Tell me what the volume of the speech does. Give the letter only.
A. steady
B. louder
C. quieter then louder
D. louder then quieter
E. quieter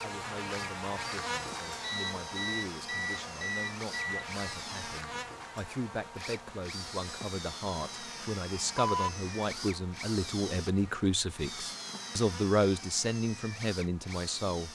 B.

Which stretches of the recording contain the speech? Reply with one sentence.
The speech can be heard from 0.0 to 14.6 s.